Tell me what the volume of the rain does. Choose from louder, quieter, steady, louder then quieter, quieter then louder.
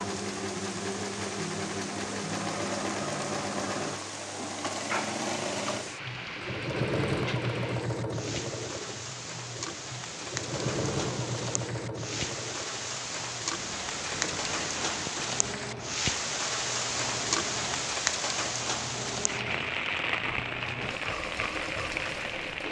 louder.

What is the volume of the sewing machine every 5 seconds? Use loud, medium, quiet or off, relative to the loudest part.
loud, loud, loud, medium, medium.